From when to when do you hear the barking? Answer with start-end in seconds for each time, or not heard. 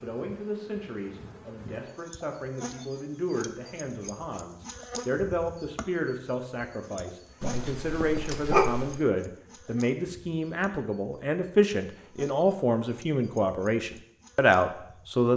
7.4-9.0.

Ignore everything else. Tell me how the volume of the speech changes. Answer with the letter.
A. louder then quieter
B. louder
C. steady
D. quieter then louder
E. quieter
B.